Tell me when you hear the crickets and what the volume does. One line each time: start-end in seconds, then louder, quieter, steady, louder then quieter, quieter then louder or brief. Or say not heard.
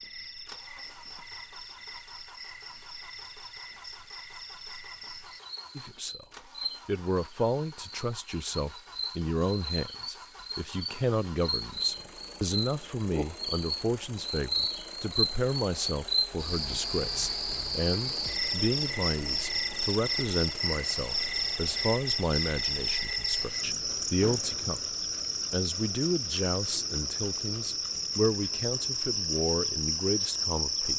0.0-30.9 louder.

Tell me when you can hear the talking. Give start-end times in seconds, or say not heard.
5.8-6.2, 6.8-24.8, 25.5-30.9.